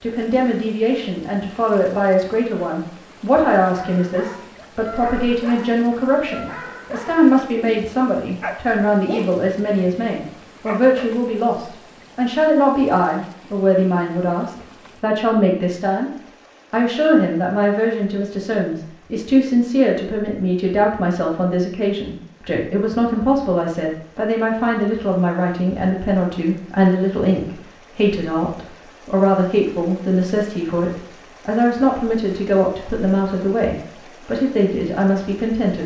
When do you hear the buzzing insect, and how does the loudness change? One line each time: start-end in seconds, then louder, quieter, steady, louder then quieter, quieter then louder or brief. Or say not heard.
not heard.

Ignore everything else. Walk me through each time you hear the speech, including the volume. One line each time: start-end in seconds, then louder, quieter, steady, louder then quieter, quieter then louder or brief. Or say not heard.
0.0-16.1 steady
16.7-35.8 steady.